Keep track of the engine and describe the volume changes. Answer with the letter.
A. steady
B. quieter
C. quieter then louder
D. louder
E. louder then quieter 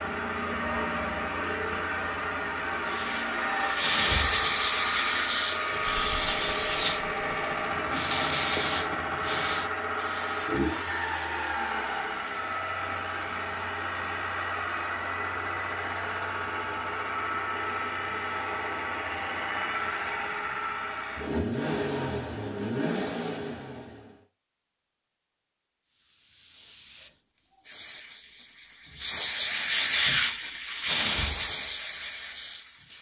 A.